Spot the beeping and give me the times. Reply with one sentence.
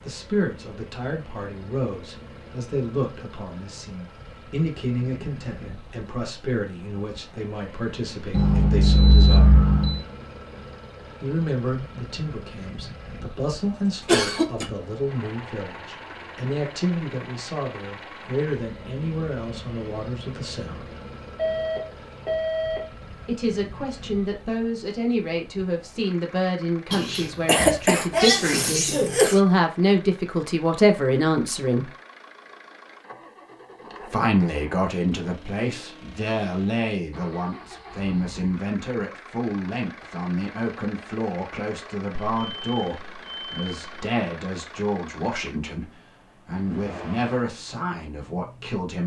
You can hear the beeping from 8.3 to 10.0 s, from 21.4 to 22.9 s and from 42.1 to 44.1 s.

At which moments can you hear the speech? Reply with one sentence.
The speech can be heard from 0.0 to 9.6 s, from 11.2 to 20.9 s, from 23.2 to 31.9 s and from 34.1 to 49.0 s.